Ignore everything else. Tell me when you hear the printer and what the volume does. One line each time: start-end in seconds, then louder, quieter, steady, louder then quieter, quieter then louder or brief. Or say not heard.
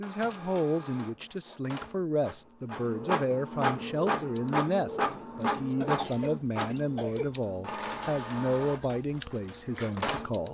0.0-10.4 louder then quieter.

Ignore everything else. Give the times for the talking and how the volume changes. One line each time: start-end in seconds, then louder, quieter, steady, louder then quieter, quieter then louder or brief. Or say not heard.
0.0-10.4 steady.